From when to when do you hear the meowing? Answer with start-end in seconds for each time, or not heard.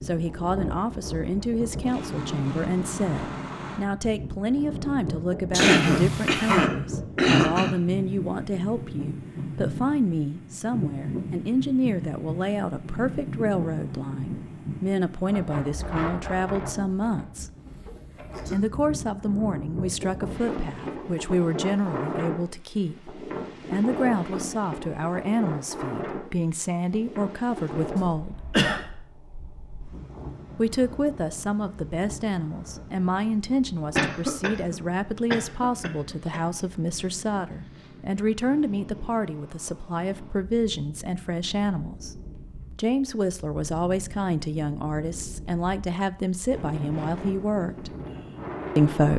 5.5-6.7.